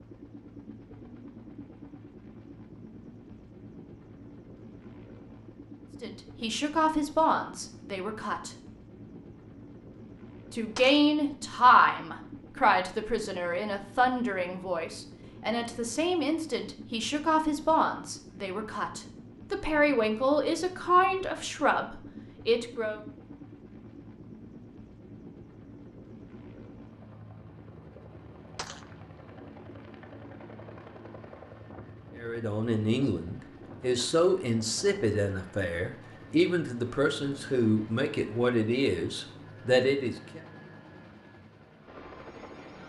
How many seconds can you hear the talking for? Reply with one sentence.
You can hear the talking for 23 seconds altogether.